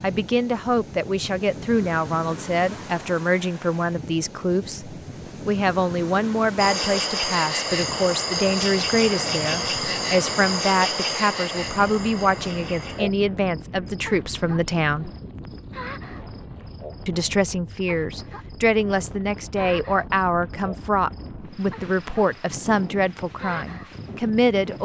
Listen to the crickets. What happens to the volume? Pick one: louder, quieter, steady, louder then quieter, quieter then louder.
quieter.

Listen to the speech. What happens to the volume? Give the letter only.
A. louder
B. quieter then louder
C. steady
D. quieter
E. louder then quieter
C.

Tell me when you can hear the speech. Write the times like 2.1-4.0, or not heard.
0.0-15.1, 17.1-24.8.